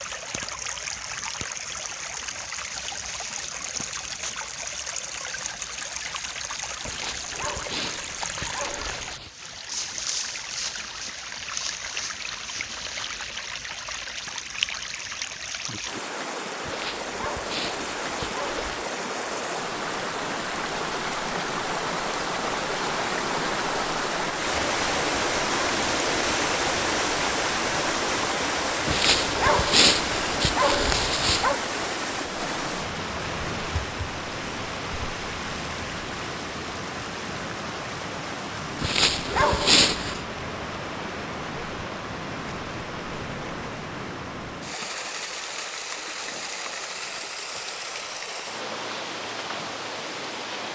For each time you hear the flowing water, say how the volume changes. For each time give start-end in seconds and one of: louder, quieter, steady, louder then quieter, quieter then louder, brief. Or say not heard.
0.0-50.7 louder then quieter.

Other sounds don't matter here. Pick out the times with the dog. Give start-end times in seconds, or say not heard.
6.8-9.3, 16.6-18.9, 28.9-31.6, 38.8-40.2.